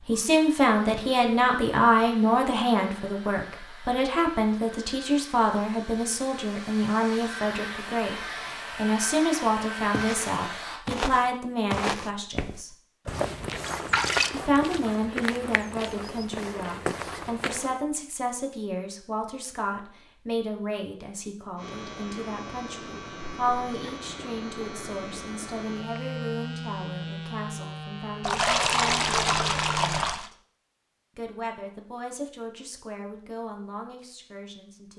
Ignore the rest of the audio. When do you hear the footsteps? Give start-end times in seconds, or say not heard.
9.9-17.8.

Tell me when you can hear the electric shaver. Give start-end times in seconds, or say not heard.
21.6-30.1.